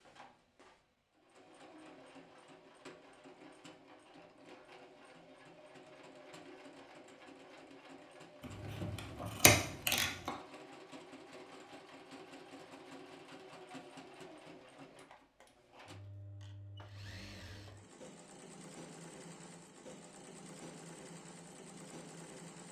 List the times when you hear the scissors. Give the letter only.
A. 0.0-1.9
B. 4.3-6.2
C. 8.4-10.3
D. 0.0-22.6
C.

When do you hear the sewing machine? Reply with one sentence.
You can hear the sewing machine from 0.0 to 22.6 s.